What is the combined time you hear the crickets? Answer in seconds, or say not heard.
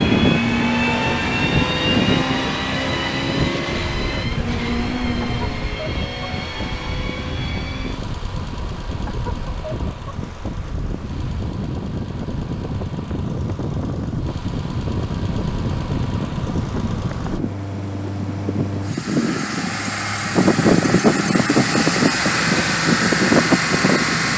not heard.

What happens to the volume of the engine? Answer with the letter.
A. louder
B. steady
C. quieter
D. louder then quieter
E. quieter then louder
E.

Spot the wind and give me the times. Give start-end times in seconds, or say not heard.
0.0-24.3.